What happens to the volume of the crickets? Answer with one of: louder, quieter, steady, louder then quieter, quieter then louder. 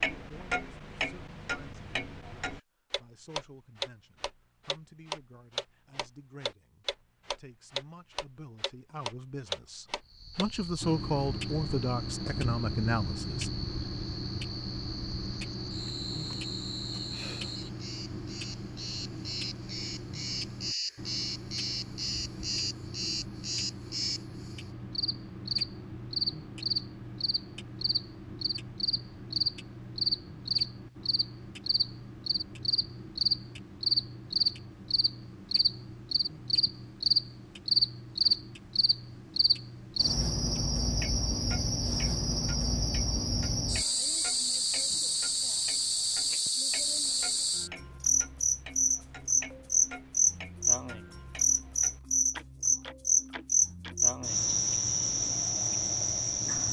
louder.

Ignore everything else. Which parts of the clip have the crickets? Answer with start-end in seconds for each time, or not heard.
10.1-56.6.